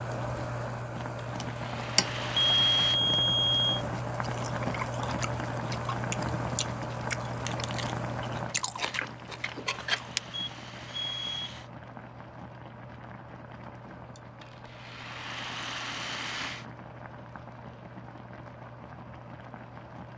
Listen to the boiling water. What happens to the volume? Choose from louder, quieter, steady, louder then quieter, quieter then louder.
quieter.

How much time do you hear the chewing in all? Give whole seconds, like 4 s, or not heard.
6 s.